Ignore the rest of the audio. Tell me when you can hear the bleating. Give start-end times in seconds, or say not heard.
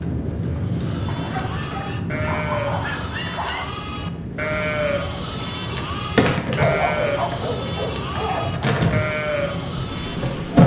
0.5-10.5.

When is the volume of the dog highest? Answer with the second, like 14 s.
7 s.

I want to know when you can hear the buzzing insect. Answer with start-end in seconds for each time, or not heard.
0.0-1.8, 5.3-10.6.